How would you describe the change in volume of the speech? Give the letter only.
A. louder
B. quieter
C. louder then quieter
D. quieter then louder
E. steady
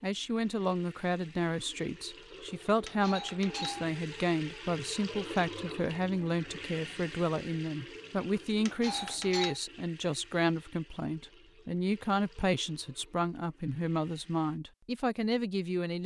E.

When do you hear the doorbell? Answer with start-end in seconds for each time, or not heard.
2.9-4.0, 8.7-9.6.